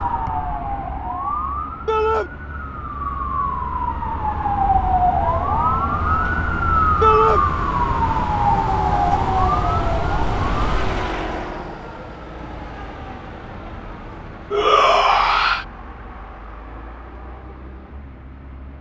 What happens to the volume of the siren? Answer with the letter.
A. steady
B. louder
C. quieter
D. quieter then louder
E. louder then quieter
B.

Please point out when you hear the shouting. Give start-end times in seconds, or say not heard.
1.9-2.3, 7.0-7.4, 14.5-15.7.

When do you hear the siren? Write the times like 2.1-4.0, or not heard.
0.0-11.1.